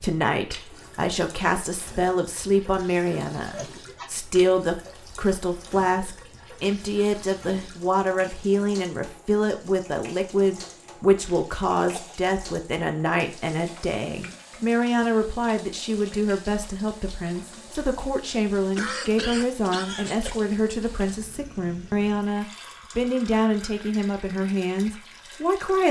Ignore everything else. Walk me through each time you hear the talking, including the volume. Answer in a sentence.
The talking can be heard from 0.0 to 25.8 s, at a steady volume.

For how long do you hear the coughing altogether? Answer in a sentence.
You can hear the coughing for 3 seconds altogether.